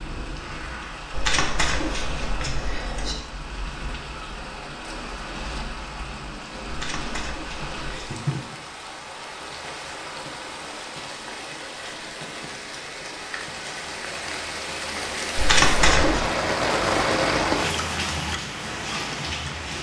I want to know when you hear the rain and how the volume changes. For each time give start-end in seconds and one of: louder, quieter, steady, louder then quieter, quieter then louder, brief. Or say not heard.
0.0-19.7 louder.